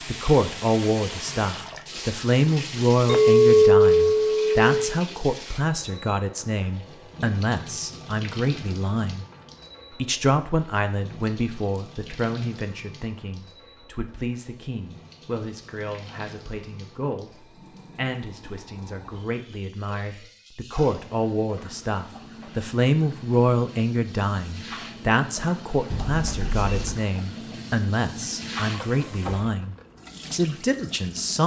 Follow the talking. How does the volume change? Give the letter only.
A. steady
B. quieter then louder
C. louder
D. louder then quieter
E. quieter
B.